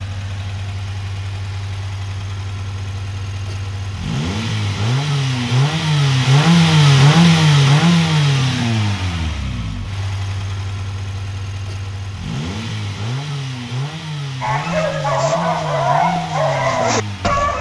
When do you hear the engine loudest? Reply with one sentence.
The loudest moment of the engine is at 7 seconds.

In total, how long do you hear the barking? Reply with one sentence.
The barking can be heard for 3 seconds in total.